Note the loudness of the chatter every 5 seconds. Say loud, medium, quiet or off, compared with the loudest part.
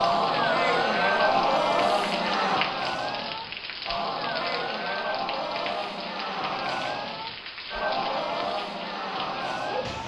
loud, medium.